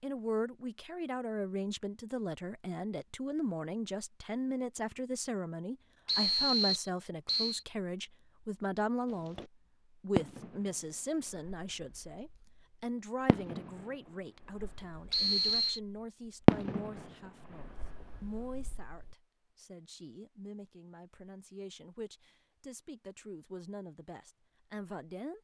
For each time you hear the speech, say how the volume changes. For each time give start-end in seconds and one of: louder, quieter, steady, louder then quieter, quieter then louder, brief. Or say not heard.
0.0-25.3 quieter.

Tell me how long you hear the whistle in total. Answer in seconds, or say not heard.
2 s.